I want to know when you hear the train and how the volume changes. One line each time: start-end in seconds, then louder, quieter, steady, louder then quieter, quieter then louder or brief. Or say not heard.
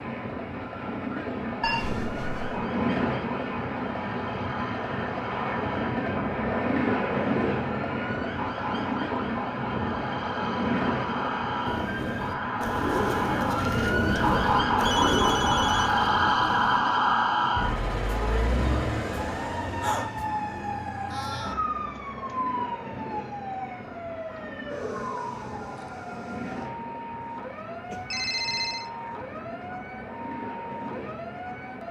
0.0-31.8 quieter.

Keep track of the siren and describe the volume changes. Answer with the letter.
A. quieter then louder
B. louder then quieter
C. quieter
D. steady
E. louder
B.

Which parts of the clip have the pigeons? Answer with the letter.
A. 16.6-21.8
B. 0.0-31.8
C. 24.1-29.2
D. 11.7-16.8
D.